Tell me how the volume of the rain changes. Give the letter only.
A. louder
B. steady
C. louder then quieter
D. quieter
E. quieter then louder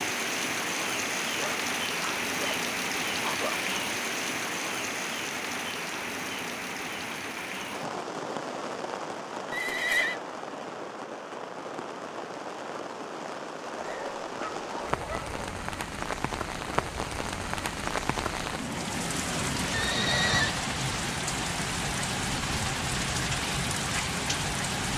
E.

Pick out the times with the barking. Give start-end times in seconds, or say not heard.
1.4-3.6, 13.8-15.4.